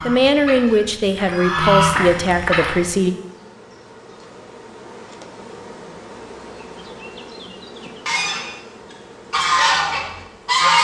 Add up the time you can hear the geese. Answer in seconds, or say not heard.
6 s.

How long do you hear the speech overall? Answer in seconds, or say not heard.
3 s.